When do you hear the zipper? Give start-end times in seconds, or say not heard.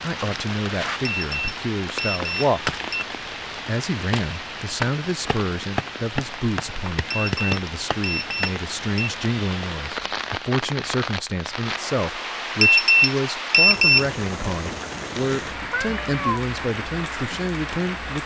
not heard.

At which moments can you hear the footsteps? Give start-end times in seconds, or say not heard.
not heard.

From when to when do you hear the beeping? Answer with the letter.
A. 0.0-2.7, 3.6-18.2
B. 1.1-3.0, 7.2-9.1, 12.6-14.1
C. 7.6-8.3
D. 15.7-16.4
B.